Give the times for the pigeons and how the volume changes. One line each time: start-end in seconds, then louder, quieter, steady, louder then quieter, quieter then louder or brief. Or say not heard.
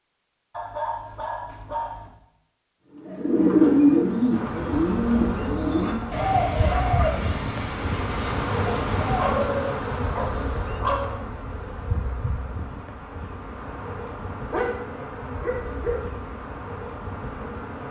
2.9-9.6 quieter.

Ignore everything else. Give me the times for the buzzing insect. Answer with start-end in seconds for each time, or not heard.
4.3-17.8.